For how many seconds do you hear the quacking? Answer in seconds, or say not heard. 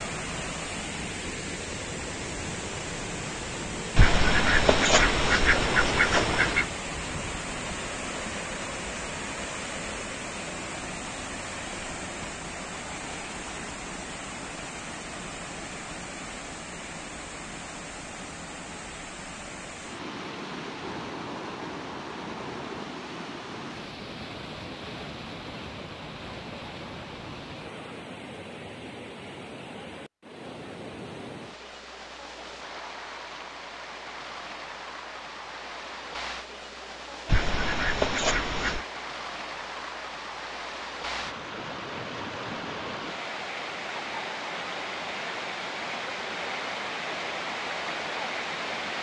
4 s.